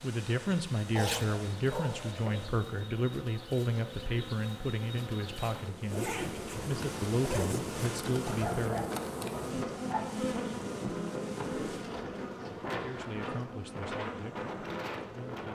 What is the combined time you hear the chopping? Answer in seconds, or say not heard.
not heard.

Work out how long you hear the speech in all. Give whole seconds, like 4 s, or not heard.
12 s.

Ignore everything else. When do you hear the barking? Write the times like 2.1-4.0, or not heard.
0.9-2.5, 8.2-10.1.